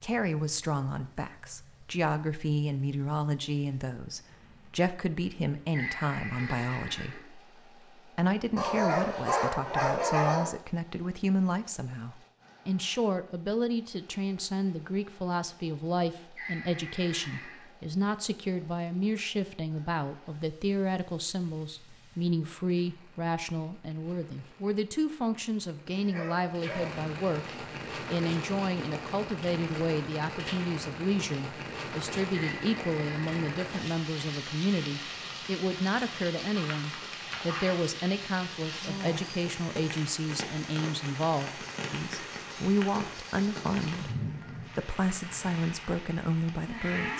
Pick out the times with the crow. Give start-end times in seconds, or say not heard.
not heard.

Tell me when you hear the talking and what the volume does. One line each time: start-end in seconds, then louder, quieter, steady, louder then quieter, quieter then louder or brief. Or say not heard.
0.0-47.1 steady.